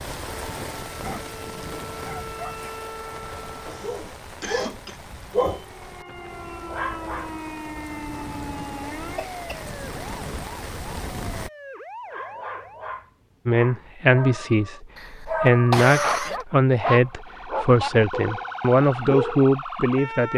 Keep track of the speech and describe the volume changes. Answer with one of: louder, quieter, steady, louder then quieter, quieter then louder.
steady.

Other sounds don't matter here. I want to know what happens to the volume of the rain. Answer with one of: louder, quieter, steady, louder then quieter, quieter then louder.
quieter then louder.